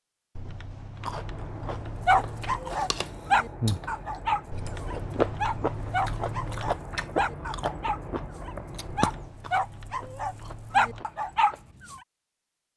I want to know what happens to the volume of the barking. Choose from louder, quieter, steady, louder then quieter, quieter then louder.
quieter then louder.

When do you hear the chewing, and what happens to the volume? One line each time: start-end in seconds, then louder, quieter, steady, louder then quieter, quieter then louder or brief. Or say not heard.
1.0-11.8 louder then quieter.